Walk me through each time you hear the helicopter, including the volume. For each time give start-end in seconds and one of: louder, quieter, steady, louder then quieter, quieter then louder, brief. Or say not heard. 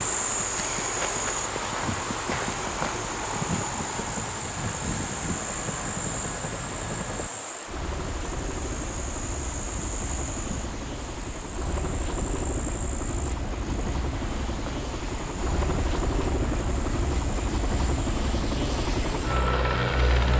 0.0-20.3 louder.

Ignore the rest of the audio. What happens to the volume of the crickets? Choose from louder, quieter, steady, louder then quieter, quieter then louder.
quieter.